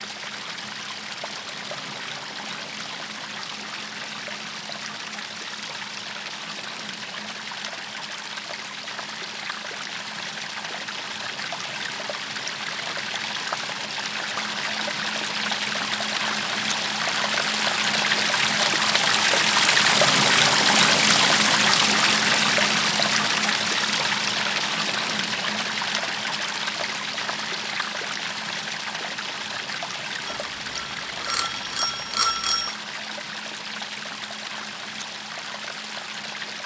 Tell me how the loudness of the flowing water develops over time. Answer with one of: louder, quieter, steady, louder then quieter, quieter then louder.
louder then quieter.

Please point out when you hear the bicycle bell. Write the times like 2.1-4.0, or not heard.
30.2-32.8.